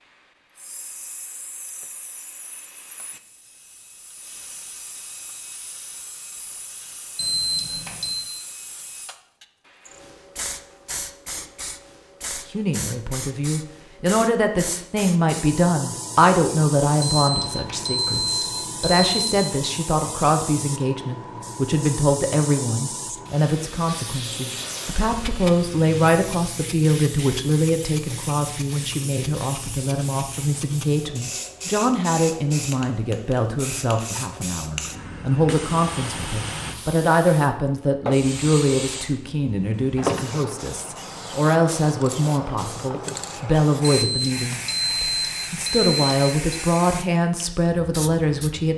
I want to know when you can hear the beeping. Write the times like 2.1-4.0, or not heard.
7.2-8.2, 17.1-19.4, 44.0-46.6.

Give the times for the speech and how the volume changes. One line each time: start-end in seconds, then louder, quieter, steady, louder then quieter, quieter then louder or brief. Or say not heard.
12.5-48.7 steady.